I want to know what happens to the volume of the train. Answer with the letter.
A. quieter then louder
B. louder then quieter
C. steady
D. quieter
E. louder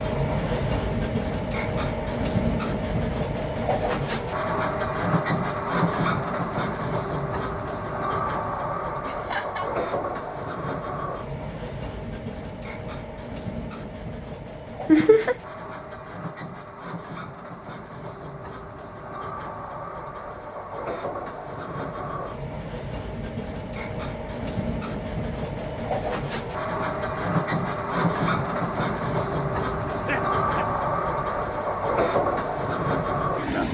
A.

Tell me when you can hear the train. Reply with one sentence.
You can hear the train from 0.0 to 33.6 s.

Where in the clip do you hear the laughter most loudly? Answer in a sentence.
The volume of the laughter peaks at 15 seconds.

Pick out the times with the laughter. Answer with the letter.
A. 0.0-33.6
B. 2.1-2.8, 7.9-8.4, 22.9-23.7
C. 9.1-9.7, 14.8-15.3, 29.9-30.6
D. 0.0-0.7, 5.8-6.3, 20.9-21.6
C.